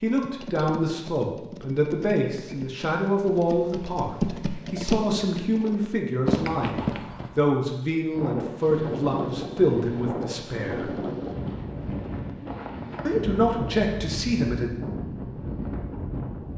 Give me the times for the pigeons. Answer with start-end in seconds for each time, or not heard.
not heard.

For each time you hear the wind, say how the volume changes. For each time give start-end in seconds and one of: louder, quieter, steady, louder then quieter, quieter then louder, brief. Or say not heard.
8.1-16.5 steady.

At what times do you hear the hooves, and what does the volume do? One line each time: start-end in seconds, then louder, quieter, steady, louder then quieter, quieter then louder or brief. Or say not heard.
0.1-7.4 louder.